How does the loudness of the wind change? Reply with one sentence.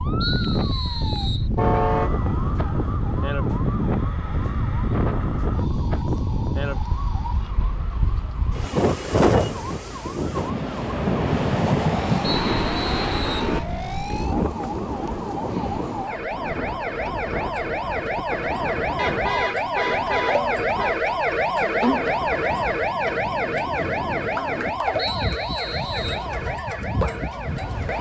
The volume of the wind goes down.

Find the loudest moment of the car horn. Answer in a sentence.
The volume of the car horn peaks at 2 seconds.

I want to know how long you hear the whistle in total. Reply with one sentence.
You can hear the whistle for 4 seconds altogether.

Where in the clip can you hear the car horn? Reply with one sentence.
You can hear the car horn from 1.6 to 2.2 s and from 18.9 to 20.9 s.